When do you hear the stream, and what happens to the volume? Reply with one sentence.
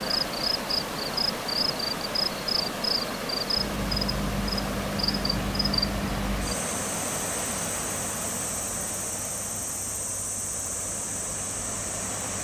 The stream can be heard from 0.0 to 12.3 s, getting quieter.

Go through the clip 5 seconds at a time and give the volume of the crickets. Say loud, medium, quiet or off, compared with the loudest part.
loud, loud, medium.